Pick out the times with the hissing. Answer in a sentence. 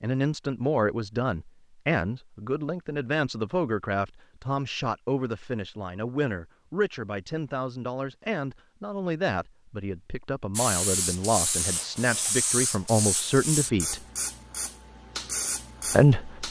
The hissing can be heard from 10.6 to 16.4 s.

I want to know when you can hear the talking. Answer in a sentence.
The talking can be heard from 0.0 to 14.0 s and from 15.9 to 16.4 s.